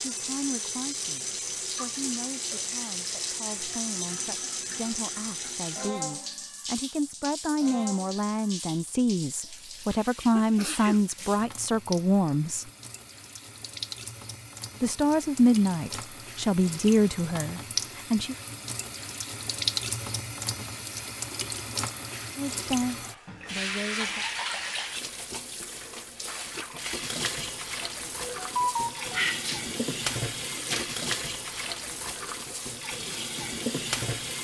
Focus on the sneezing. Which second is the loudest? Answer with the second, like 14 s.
29 s.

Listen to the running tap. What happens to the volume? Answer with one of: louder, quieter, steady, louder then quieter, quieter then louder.
quieter then louder.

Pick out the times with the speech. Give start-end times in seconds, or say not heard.
0.1-12.7, 14.8-18.4, 22.4-24.2.